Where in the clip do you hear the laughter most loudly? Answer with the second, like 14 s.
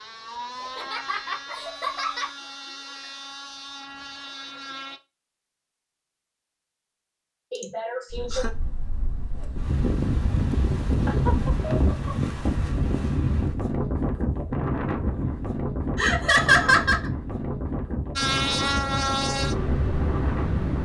17 s.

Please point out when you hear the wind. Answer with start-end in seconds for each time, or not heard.
8.1-20.7.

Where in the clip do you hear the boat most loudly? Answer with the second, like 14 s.
19 s.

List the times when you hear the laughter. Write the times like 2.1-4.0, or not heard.
0.6-2.3, 7.5-8.5, 15.9-17.1.